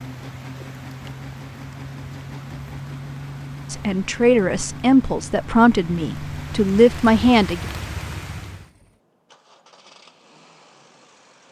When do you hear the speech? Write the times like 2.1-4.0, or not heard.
3.7-7.7.